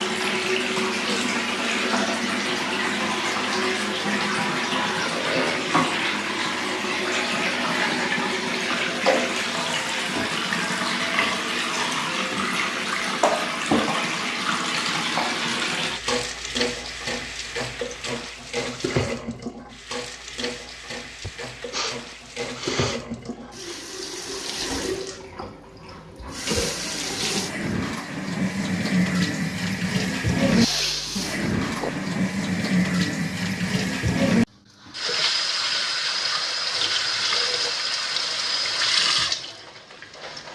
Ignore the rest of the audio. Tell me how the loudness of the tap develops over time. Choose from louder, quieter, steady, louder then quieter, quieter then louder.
quieter then louder.